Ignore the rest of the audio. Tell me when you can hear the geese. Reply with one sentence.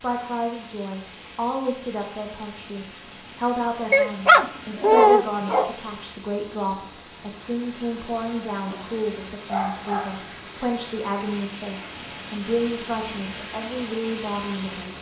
You can't hear the geese here.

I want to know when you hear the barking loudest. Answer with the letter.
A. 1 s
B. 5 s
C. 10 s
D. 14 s
B.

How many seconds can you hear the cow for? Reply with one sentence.
You can't hear the cow here.